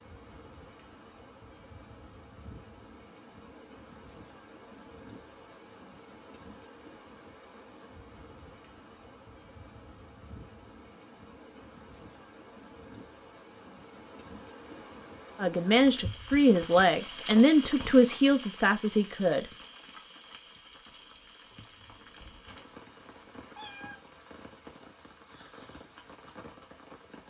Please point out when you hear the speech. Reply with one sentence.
You can hear the speech from 15.3 to 19.4 s.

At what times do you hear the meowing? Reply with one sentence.
The meowing can be heard from 21.9 to 23.9 s.